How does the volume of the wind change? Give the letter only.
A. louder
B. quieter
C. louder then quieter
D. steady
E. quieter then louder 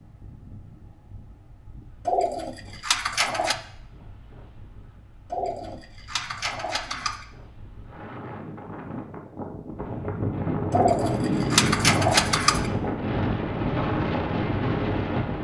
A.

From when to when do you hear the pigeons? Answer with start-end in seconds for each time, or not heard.
2.0-3.5, 5.3-7.2, 10.7-12.7.